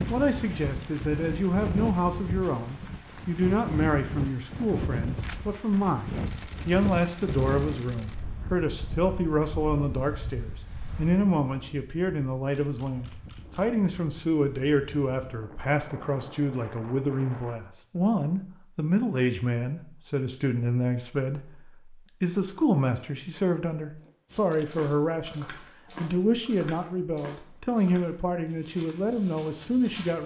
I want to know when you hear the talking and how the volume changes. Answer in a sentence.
The talking can be heard from 0.0 to 30.2 s, at a steady volume.